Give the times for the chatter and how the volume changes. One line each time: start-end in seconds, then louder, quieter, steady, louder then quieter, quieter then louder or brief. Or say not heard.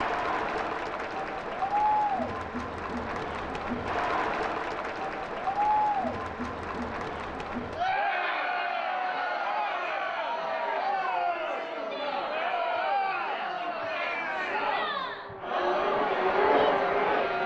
0.0-17.4 steady.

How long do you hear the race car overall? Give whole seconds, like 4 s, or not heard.
3 s.